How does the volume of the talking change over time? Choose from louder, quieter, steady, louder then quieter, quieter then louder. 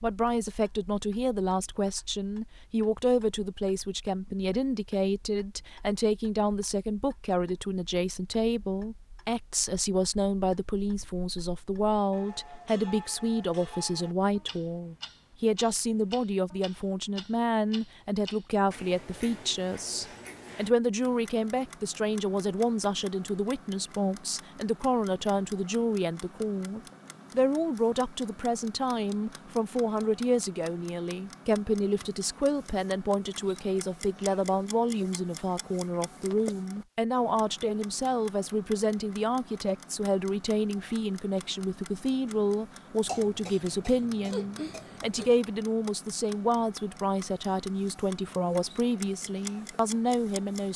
steady.